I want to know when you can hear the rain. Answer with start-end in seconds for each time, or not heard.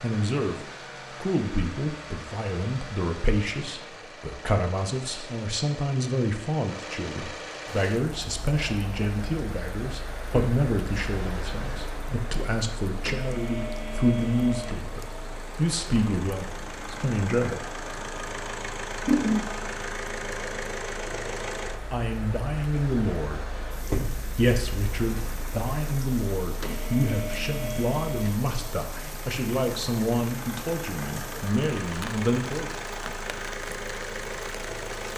7.8-35.1.